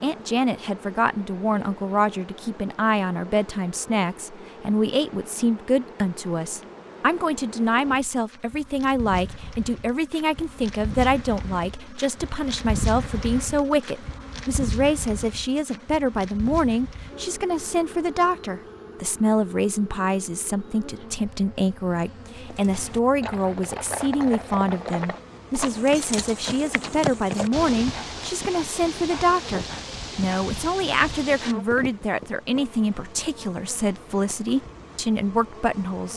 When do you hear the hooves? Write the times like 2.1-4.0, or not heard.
22.4-32.4.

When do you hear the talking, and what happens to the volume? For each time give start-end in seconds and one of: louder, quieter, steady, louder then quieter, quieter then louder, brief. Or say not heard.
0.0-36.1 steady.